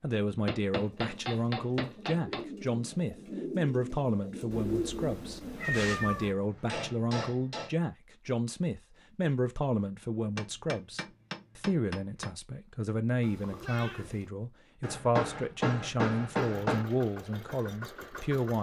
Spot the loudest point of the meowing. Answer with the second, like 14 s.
6 s.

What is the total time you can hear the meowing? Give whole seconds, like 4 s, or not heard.
3 s.